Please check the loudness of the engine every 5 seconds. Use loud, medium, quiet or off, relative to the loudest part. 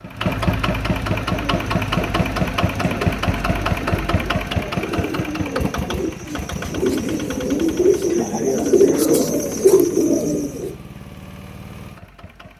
loud, medium, quiet.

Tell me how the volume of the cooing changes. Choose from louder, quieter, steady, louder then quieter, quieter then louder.
louder.